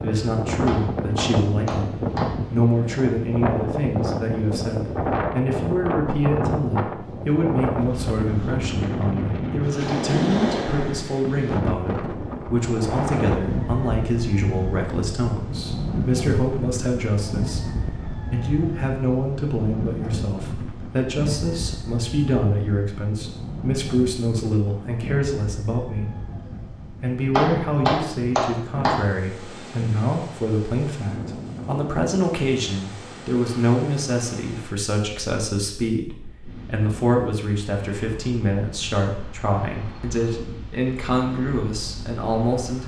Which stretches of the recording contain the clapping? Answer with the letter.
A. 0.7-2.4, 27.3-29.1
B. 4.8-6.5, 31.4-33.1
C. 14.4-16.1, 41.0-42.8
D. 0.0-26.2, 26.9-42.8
A.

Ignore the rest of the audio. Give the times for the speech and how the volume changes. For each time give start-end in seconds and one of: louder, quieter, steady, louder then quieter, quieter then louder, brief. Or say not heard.
0.0-26.2 steady
26.9-42.8 steady.